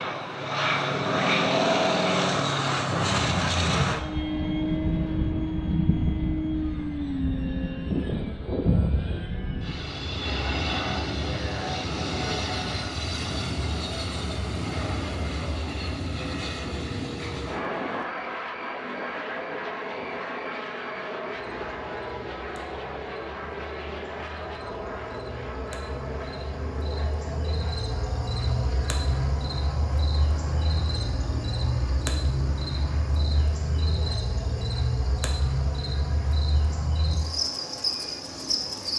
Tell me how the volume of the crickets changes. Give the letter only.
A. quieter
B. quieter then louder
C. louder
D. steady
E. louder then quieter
C.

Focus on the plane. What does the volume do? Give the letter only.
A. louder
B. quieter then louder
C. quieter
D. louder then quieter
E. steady
C.